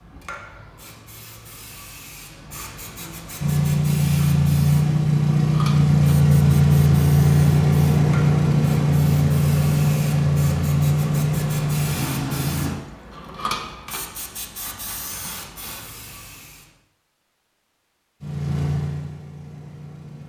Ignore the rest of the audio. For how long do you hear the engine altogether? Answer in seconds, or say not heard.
11 s.